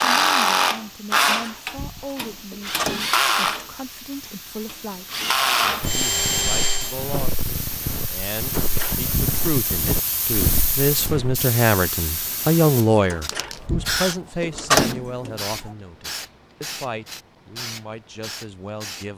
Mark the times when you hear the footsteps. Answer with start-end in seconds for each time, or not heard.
5.8-11.4.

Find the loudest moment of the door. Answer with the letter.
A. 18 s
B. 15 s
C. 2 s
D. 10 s
B.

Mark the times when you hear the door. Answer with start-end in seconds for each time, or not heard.
1.4-3.1, 8.6-9.6, 13.1-15.7.